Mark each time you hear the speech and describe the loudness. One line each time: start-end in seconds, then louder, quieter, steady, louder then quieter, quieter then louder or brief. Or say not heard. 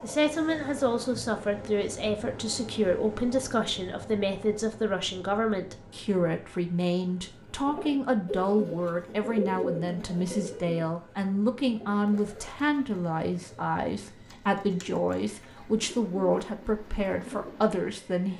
0.0-18.3 steady.